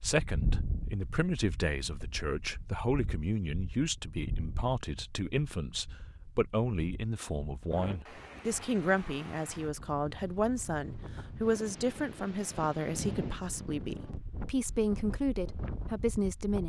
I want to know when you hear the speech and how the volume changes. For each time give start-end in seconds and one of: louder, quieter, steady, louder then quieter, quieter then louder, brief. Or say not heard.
0.0-16.6 steady.